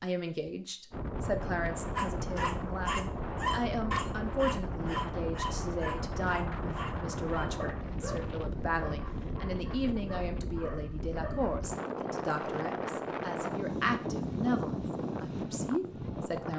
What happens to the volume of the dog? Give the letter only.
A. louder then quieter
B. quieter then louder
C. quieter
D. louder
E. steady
C.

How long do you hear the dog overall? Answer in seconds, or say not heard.
10 s.